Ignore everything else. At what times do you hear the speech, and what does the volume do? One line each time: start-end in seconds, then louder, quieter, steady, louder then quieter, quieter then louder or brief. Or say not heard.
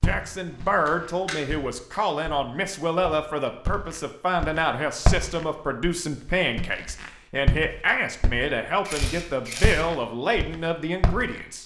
0.0-11.6 steady.